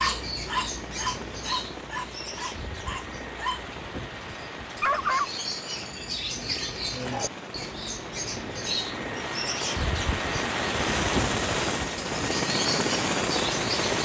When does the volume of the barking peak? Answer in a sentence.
The loudest moment of the barking is at 5 seconds.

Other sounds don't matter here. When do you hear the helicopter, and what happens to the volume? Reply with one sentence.
The helicopter can be heard from 0.1 to 14.0 s, getting louder.